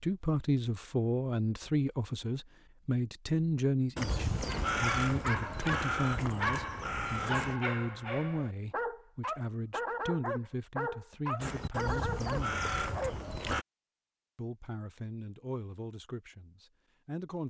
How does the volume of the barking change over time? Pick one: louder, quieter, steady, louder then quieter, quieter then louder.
steady.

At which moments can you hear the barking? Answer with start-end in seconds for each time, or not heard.
4.7-13.2.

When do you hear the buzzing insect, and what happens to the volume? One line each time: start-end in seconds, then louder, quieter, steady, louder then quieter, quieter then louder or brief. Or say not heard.
not heard.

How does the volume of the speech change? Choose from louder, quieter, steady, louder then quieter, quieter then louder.
quieter.